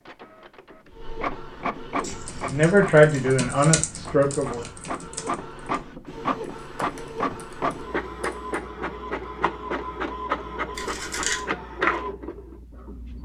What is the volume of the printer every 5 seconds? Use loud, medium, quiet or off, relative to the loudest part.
medium, loud, loud.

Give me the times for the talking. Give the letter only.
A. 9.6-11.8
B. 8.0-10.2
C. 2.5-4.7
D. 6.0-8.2
C.